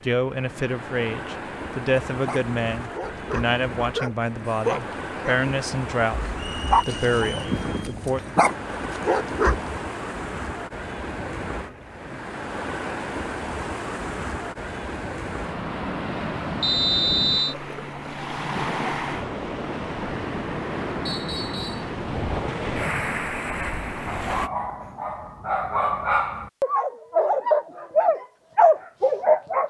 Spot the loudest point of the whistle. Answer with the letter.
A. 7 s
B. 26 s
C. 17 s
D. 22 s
C.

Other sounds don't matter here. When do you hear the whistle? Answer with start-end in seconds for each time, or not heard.
6.3-7.5, 16.6-17.6, 21.1-21.9.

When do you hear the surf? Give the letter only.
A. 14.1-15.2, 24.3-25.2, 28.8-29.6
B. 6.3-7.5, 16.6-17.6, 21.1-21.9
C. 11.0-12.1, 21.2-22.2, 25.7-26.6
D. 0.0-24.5
D.